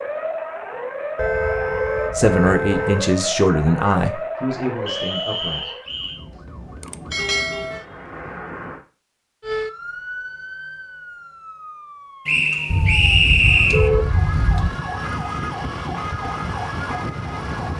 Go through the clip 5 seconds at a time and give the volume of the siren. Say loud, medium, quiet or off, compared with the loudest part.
loud, loud, medium, loud.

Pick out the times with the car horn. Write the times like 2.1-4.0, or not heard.
1.1-3.1, 7.2-8.8, 12.7-14.7.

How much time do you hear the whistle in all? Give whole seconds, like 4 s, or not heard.
3 s.